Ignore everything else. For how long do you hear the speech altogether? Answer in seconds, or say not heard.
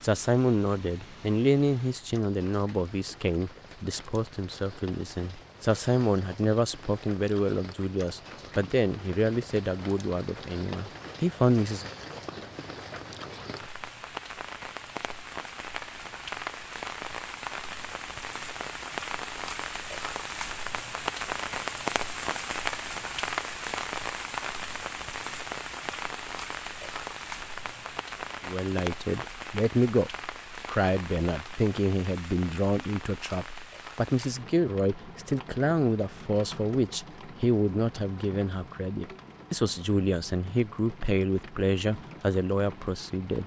27 s.